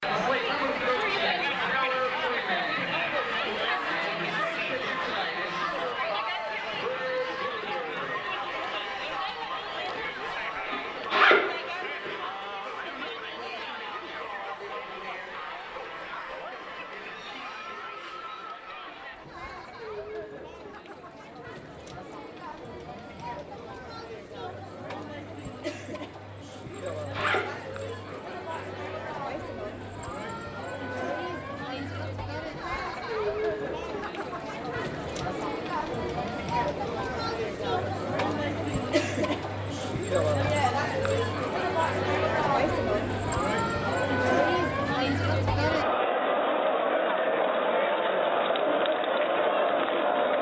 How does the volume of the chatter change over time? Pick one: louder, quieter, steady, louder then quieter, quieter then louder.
quieter then louder.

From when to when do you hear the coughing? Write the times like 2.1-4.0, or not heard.
not heard.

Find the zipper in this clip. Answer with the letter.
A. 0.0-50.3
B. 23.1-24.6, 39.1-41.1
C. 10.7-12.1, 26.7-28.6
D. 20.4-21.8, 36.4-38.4
C.